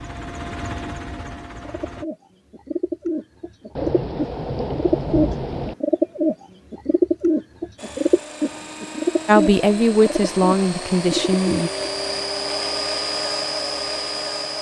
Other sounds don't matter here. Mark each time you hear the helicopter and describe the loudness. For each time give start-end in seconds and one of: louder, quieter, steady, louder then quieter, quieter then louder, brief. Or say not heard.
0.0-2.0 brief
7.8-14.5 louder.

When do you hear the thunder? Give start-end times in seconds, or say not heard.
3.8-5.8.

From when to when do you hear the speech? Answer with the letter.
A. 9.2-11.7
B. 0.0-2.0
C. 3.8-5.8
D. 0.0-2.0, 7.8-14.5
A.